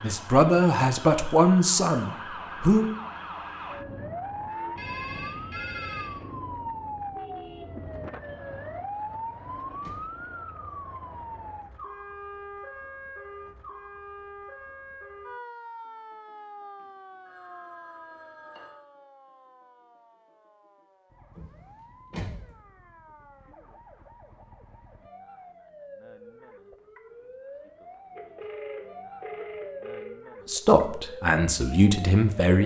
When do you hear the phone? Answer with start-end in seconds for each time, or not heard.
4.8-6.2, 16.8-18.8, 28.1-30.1.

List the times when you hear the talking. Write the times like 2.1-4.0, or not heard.
0.0-3.0, 30.4-32.6.